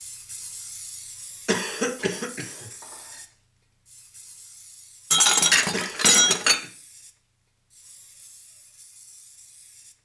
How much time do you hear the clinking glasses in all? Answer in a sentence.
The clinking glasses can be heard for 3 seconds in total.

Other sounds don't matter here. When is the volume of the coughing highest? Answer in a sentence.
The volume of the coughing peaks at 2 seconds.